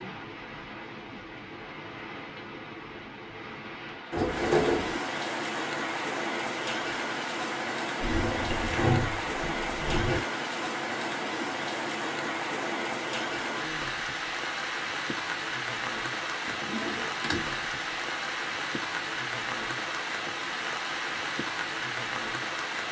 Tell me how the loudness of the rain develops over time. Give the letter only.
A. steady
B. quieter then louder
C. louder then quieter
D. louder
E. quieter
D.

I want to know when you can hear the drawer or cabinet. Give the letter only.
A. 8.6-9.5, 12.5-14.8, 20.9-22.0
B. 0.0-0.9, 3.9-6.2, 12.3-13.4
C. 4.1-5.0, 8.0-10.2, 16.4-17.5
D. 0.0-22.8
C.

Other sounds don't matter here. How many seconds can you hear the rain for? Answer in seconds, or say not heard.
23 s.